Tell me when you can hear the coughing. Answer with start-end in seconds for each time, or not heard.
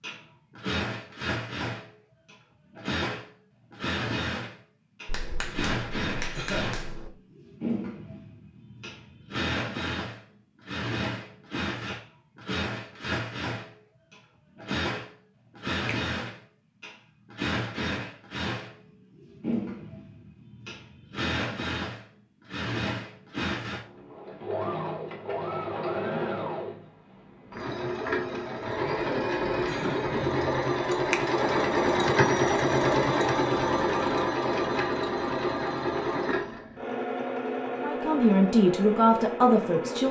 6.3-6.8, 29.6-30.1.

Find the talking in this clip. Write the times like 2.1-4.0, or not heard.
37.8-40.0.